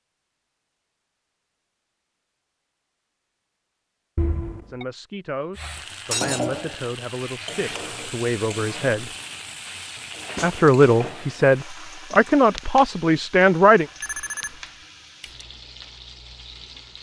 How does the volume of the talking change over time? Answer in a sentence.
The loudness of the talking goes up.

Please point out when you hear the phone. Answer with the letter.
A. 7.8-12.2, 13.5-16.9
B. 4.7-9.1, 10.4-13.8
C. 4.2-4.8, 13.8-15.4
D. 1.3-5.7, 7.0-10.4
C.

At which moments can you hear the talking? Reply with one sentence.
You can hear the talking from 4.7 to 9.1 s and from 10.4 to 13.8 s.